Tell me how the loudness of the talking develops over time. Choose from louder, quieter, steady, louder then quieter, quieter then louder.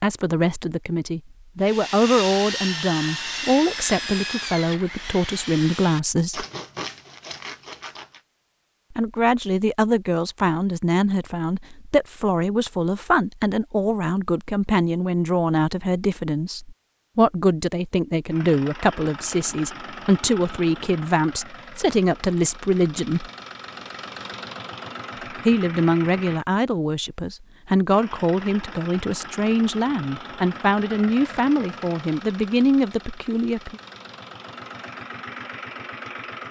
steady.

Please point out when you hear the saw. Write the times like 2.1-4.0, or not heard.
1.6-8.2.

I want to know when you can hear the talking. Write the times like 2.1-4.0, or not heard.
0.0-6.5, 8.9-23.3, 25.4-33.8.